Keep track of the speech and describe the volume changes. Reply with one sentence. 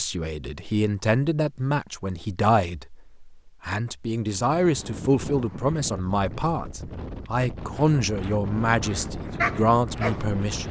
The loudness of the speech stays about the same.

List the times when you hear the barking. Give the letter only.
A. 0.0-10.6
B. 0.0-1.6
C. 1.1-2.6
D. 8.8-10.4
D.